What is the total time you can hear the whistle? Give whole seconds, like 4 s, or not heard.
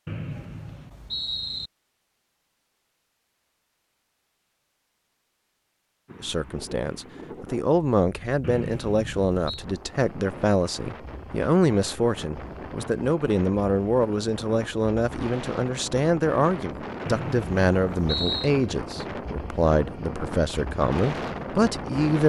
4 s.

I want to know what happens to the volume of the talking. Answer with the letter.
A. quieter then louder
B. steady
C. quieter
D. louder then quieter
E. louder
B.